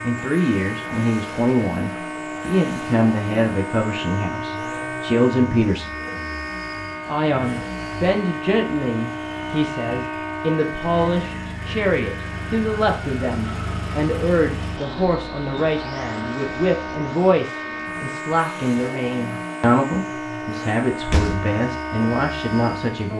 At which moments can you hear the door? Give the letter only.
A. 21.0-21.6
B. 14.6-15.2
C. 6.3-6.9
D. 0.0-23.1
A.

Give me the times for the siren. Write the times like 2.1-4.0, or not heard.
0.0-23.1.